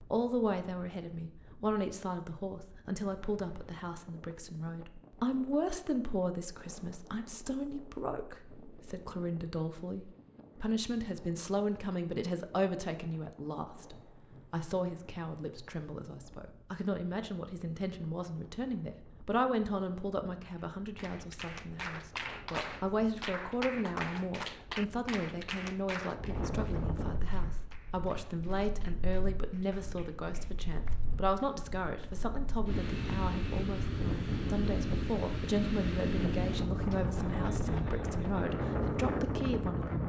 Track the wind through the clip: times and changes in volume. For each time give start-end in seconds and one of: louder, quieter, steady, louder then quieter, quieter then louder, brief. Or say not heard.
0.0-40.0 louder.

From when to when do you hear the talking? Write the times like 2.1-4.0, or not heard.
0.0-40.0.